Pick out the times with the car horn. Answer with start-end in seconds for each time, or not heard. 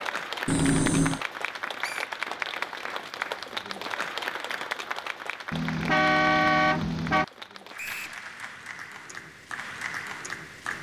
0.5-1.2, 5.5-7.2.